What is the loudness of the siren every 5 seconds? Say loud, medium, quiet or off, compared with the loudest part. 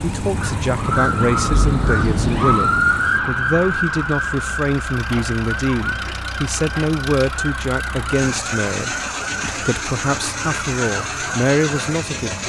loud, medium, medium.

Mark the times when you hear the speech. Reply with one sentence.
The speech can be heard from 0.0 to 12.4 s.